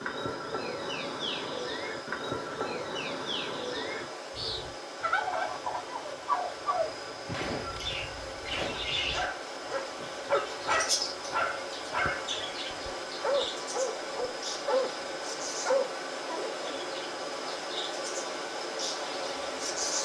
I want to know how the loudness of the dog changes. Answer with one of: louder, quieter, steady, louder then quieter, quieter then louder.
steady.